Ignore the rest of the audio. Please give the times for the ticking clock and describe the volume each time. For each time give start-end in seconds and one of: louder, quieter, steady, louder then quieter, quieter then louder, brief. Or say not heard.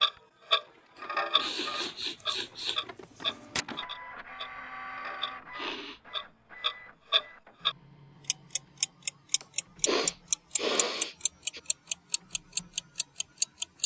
0.0-13.8 quieter then louder.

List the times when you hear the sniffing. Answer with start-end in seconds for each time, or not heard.
1.4-2.8, 5.5-6.0, 9.4-11.6.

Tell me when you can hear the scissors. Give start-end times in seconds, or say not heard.
2.2-3.6.